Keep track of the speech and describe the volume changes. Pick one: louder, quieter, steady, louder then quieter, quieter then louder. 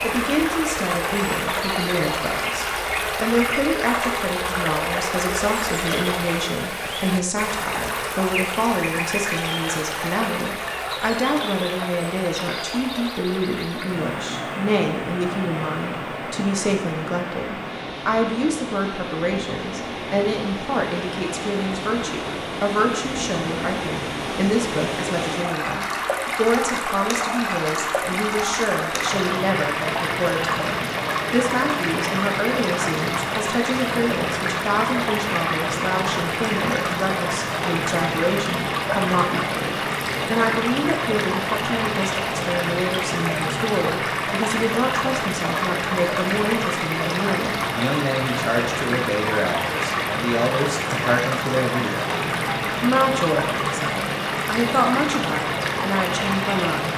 steady.